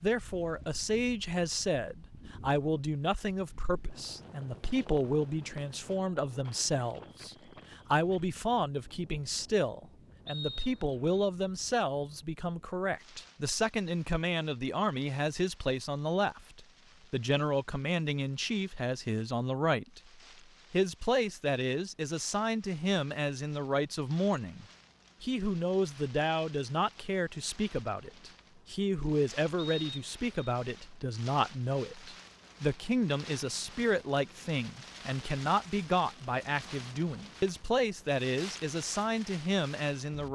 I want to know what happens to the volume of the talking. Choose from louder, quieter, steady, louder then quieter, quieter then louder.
steady.